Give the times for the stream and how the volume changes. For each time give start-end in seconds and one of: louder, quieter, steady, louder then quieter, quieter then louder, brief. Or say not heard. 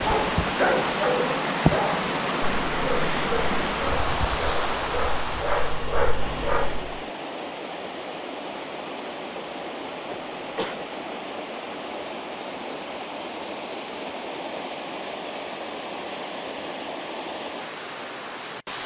0.0-18.8 quieter.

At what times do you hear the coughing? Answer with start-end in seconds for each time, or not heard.
10.1-10.8.